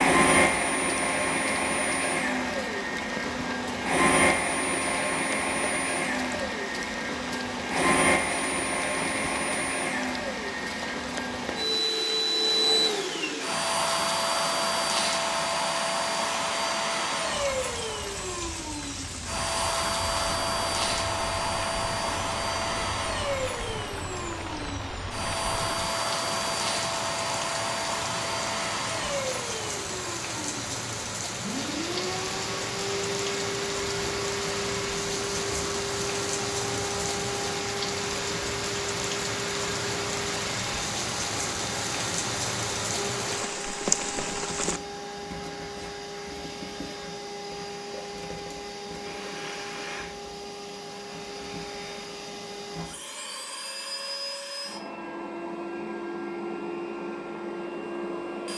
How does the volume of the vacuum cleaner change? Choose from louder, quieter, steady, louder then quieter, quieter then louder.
quieter.